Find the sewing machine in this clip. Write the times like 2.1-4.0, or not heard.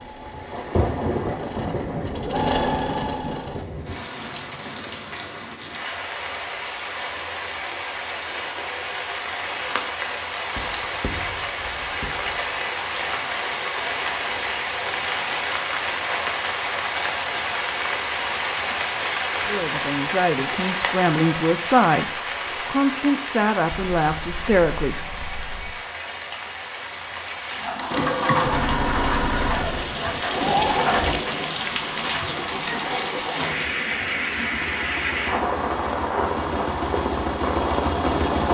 0.0-3.6, 27.8-38.5.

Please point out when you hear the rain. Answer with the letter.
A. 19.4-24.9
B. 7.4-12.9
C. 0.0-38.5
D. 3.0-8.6
C.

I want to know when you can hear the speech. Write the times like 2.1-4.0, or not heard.
19.4-24.9.